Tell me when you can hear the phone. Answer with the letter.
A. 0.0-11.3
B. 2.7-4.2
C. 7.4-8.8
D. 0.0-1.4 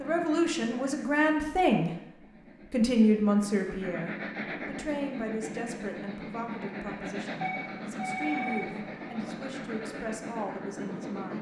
C.